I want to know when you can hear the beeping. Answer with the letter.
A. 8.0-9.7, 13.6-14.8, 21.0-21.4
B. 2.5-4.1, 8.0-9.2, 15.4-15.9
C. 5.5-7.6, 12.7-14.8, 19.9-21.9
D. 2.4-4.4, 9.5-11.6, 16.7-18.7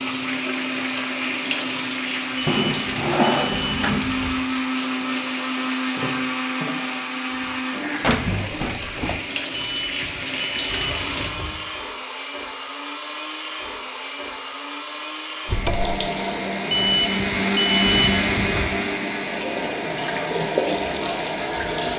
D.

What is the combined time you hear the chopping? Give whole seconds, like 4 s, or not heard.
not heard.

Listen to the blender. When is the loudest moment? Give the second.
18 s.